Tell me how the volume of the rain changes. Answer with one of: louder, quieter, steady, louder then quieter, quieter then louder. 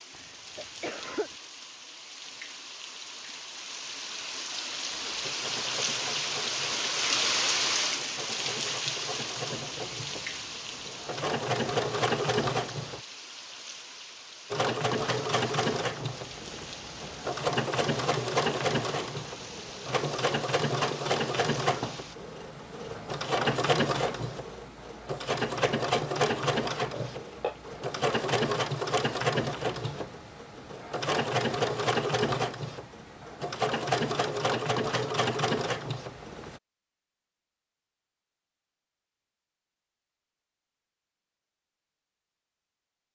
louder then quieter.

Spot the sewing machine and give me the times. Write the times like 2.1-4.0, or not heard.
4.9-13.0, 14.5-36.6.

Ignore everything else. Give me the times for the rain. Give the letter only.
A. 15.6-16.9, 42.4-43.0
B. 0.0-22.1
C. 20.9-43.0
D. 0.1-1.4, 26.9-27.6
B.